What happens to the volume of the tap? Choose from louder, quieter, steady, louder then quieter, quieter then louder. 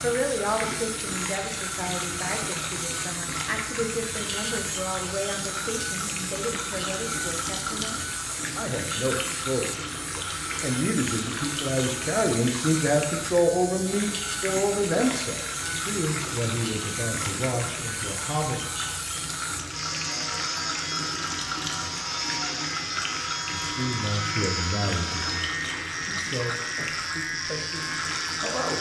steady.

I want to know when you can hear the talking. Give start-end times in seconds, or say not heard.
0.0-18.6, 23.7-28.7.